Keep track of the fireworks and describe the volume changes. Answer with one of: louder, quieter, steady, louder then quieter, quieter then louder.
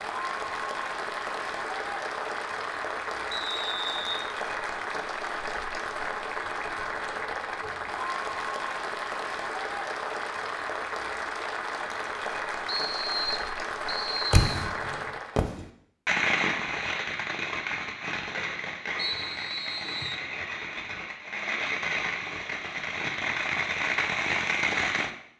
quieter then louder.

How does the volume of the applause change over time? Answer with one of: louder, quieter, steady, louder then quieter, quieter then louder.
steady.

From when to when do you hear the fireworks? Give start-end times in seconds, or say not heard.
14.3-25.1.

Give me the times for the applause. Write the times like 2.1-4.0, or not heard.
0.0-15.4.